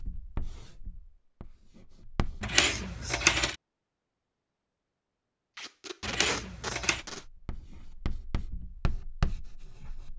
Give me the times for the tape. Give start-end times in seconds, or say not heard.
5.5-7.2.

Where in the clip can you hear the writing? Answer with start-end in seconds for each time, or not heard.
0.0-2.5, 7.0-10.1.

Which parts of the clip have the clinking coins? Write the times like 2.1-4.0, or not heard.
2.4-3.5, 6.0-7.0.